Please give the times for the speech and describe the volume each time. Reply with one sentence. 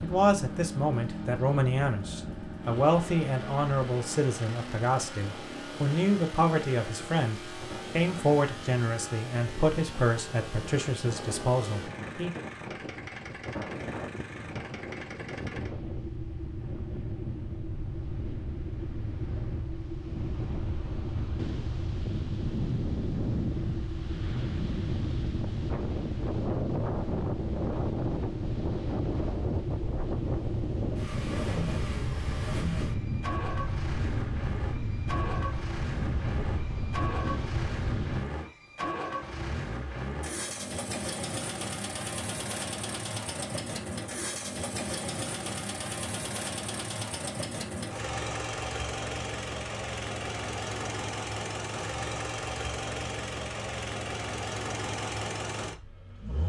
You can hear the speech from 0.0 to 12.4 s, at a steady volume.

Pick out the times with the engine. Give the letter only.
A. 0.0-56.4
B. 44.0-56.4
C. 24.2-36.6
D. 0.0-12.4
A.